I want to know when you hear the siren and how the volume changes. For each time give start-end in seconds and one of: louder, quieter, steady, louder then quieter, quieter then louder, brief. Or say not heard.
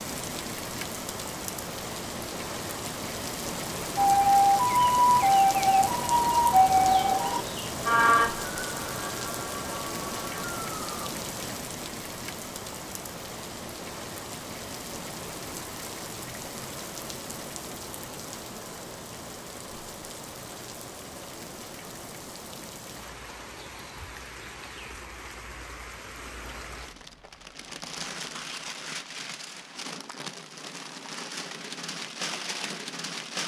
4.0-11.1 quieter.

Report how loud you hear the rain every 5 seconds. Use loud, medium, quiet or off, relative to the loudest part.
loud, loud, loud, medium, medium, medium, loud.